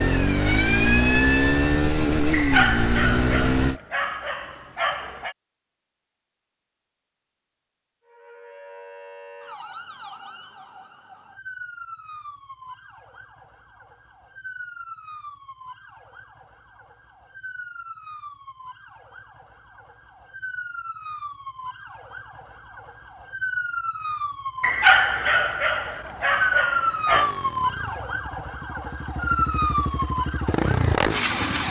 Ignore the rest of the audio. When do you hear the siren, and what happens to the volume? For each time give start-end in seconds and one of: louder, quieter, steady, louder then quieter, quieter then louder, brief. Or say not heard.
0.0-1.9 brief
8.1-31.6 louder.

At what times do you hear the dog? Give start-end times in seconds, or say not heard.
2.3-5.3, 24.6-27.3.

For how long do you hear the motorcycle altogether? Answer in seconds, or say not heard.
8 s.